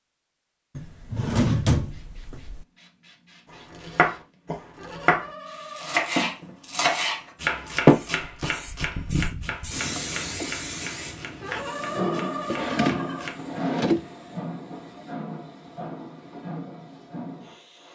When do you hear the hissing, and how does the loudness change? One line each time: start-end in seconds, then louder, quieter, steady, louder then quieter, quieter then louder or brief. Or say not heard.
1.9-17.9 louder then quieter.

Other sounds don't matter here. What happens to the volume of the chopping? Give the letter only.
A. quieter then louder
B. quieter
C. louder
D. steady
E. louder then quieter
B.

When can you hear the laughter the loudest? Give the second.
12 s.